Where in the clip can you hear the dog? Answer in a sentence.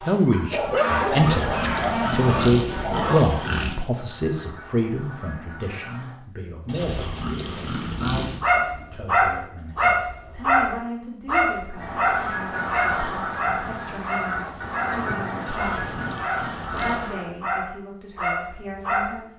You can hear the dog from 0.0 to 3.5 s and from 8.4 to 19.2 s.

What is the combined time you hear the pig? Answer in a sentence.
You can hear the pig for 6 seconds altogether.